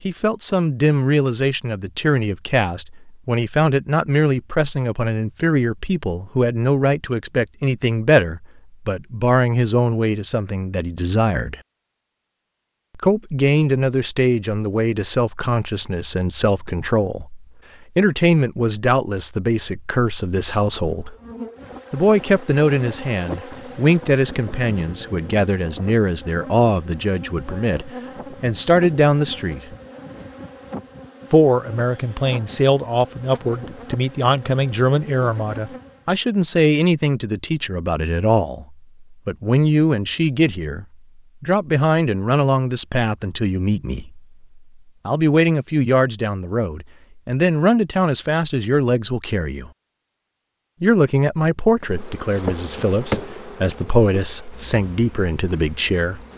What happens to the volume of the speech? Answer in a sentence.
The loudness of the speech stays about the same.